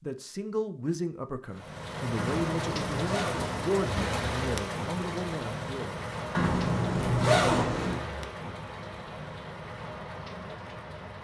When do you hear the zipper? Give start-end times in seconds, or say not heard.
2.1-3.9, 6.3-8.1.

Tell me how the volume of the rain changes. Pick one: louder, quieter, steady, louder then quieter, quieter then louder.
quieter.